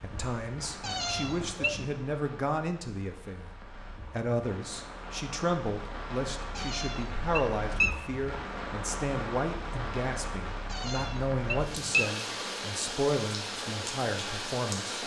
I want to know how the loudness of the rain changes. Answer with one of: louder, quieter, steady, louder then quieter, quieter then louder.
louder.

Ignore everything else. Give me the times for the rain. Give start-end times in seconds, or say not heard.
0.0-15.0.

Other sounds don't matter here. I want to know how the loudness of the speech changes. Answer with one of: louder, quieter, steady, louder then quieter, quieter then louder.
steady.